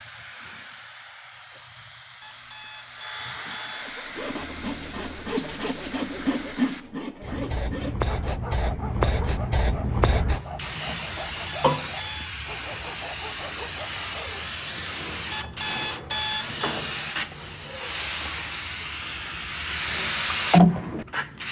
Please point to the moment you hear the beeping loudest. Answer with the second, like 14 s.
16 s.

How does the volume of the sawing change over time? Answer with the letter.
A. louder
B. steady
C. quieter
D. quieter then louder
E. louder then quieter
C.